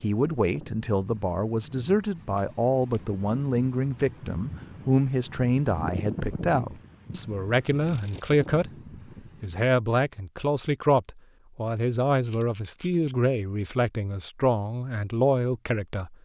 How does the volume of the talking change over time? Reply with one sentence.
The loudness of the talking stays about the same.